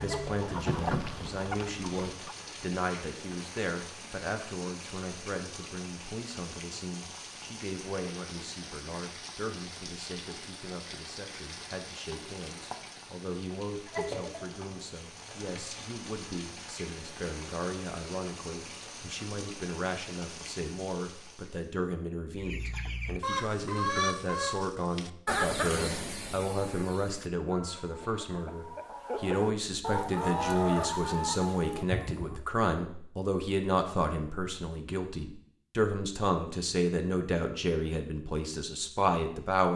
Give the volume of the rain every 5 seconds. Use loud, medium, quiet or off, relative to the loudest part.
loud, loud, loud, loud, medium, off, off, off.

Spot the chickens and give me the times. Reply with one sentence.
You can hear the chickens from 0.0 to 2.4 s and from 22.4 to 32.4 s.